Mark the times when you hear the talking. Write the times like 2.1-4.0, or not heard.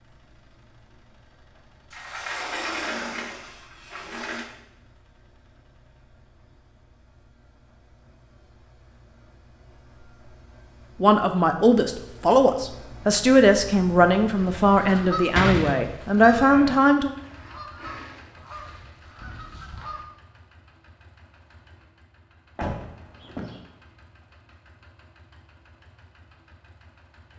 11.0-17.1.